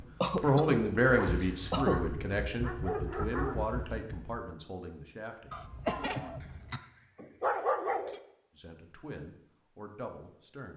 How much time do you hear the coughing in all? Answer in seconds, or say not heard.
3 s.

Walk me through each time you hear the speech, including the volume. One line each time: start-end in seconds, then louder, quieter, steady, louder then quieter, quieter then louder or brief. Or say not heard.
0.0-5.7 quieter
8.6-10.7 brief.